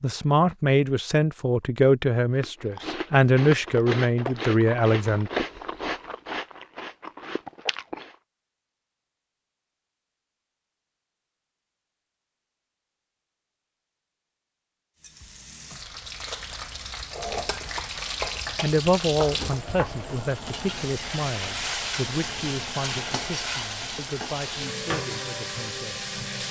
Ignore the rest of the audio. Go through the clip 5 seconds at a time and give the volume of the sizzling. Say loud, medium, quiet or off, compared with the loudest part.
off, off, off, loud, loud, loud.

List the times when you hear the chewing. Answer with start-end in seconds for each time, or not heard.
2.4-8.2.